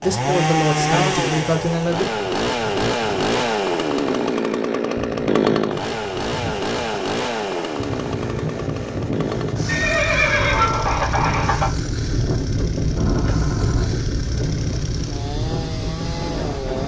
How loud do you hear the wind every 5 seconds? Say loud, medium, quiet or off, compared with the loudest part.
medium, medium, loud, loud.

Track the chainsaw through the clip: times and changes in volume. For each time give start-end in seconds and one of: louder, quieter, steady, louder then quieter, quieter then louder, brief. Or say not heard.
0.0-16.8 quieter.